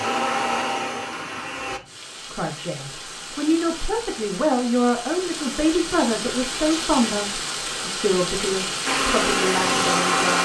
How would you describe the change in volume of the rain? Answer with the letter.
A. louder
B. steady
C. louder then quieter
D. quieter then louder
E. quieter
A.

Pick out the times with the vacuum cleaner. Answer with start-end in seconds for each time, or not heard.
0.0-1.8, 8.8-10.3.